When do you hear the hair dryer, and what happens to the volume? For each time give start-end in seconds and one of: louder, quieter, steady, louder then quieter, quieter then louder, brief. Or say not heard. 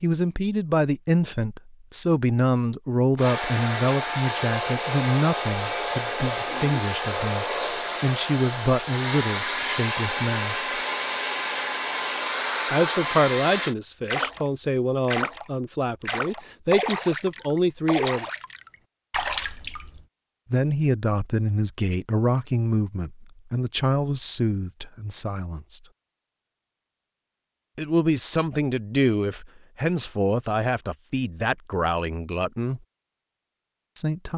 3.1-13.8 steady.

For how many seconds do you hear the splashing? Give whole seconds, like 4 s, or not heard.
6 s.